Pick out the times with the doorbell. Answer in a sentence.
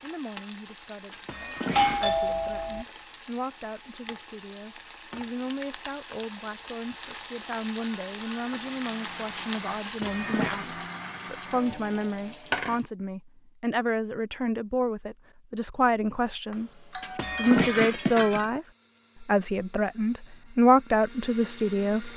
The doorbell can be heard from 1.7 to 2.9 s, from 7.8 to 8.5 s and from 16.5 to 17.6 s.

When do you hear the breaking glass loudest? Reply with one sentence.
The loudest moment of the breaking glass is at 18 seconds.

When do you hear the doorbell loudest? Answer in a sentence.
The volume of the doorbell peaks at 2 seconds.